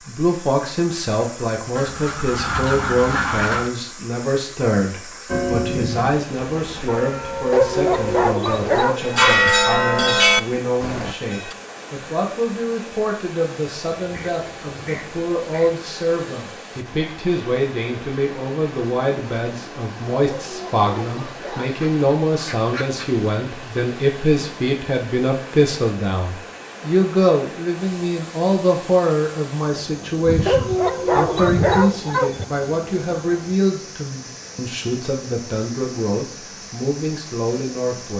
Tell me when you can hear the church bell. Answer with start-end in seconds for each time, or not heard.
5.3-11.6.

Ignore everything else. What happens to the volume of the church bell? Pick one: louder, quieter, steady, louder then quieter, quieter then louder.
louder.